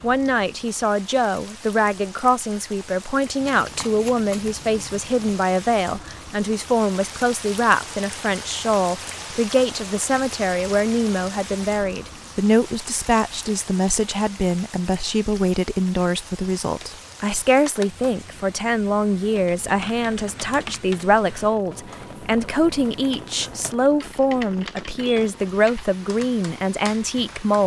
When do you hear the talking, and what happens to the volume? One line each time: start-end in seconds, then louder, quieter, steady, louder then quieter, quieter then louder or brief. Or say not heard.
0.0-27.6 steady.